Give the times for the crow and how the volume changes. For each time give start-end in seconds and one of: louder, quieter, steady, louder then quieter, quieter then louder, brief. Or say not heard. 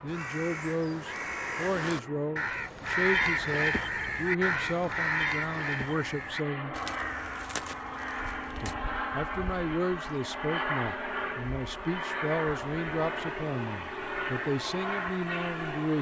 0.1-8.8 louder then quieter.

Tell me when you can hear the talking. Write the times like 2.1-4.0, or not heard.
0.0-6.8, 8.6-15.9.